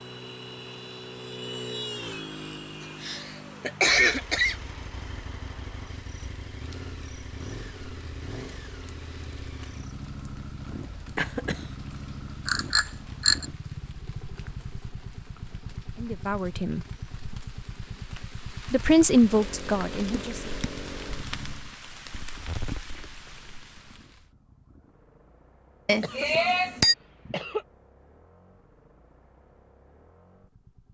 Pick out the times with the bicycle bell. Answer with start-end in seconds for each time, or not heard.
12.4-13.4, 25.9-26.9.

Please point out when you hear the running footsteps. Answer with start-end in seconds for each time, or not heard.
not heard.